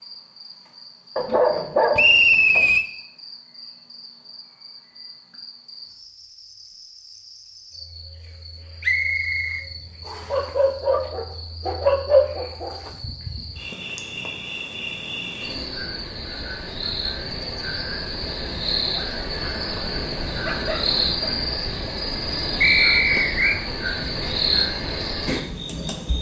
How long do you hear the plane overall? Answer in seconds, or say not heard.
not heard.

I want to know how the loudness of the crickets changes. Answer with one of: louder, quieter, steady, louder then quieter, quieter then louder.
louder.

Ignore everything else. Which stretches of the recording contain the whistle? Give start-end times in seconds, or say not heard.
1.9-2.9, 8.8-10.3, 22.6-23.6.